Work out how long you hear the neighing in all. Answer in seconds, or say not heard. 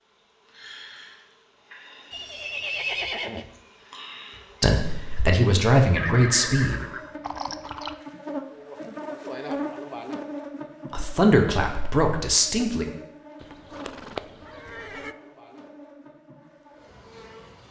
5 s.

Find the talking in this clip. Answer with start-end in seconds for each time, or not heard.
4.6-6.8, 10.9-12.8.